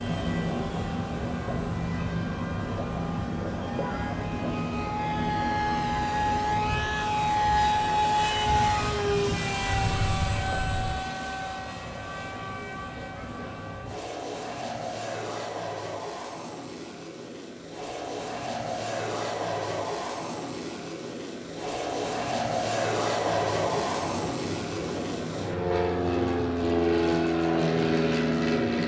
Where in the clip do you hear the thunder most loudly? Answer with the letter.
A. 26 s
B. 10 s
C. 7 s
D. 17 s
B.